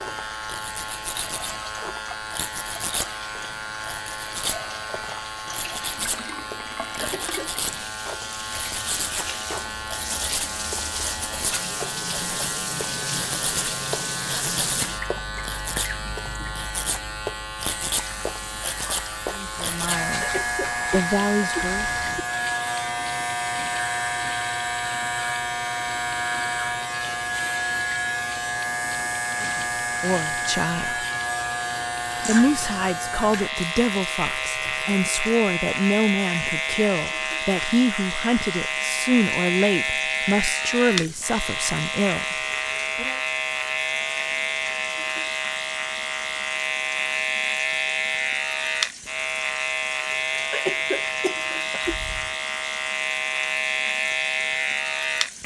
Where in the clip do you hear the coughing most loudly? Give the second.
51 s.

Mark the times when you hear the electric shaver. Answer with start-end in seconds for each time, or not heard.
0.0-55.4.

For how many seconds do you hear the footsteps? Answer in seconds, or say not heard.
not heard.